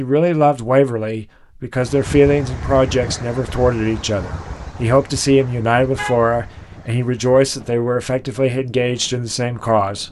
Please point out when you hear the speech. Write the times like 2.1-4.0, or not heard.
0.0-10.0.